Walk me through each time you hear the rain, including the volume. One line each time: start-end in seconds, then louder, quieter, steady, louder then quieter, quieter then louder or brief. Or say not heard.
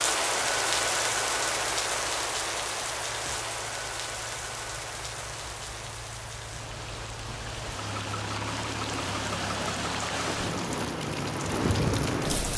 0.0-12.5 quieter then louder.